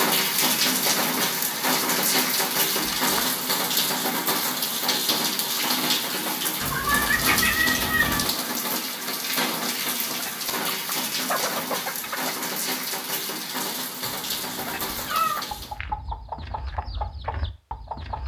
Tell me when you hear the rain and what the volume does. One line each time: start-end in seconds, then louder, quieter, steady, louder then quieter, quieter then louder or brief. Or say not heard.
0.0-15.8 quieter.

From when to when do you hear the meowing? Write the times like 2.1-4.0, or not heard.
2.8-3.2, 6.6-8.2, 14.1-15.7.